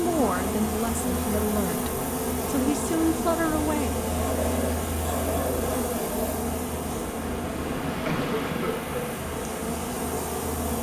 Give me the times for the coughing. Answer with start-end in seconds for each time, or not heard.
8.1-9.1.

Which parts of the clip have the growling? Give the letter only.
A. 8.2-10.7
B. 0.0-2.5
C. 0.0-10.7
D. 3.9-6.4
D.